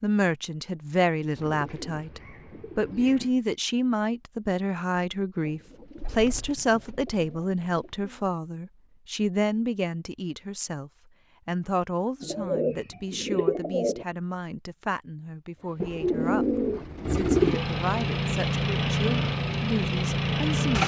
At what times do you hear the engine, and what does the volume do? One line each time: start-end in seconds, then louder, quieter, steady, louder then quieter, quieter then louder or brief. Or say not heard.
15.5-20.8 louder.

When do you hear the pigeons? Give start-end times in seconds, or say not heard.
1.4-3.4, 5.4-8.2, 12.2-14.1, 15.8-17.6.